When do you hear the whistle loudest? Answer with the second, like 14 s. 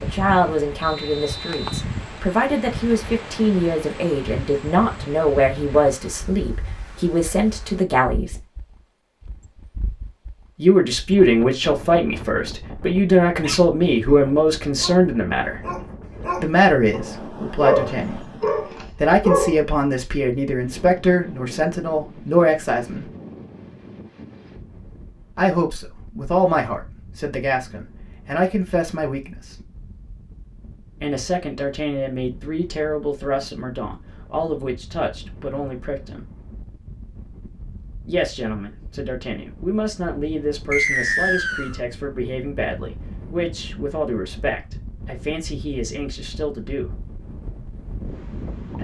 41 s.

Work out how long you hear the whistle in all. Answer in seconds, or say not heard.
2 s.